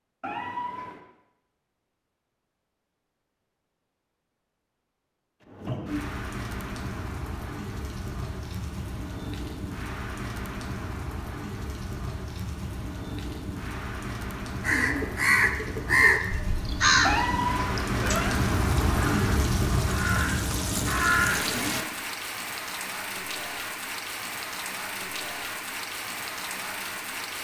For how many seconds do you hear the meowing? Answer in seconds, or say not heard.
2 s.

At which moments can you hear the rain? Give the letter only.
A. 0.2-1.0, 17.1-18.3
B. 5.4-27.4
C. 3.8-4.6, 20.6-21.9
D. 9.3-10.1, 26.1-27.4
B.